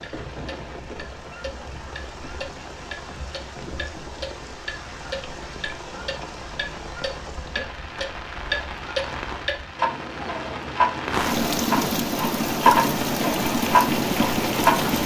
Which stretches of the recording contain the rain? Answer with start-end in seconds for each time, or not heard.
0.0-15.0.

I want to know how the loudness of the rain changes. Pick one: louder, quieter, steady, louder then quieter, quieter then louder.
louder.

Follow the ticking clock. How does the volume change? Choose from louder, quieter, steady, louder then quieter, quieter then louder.
louder.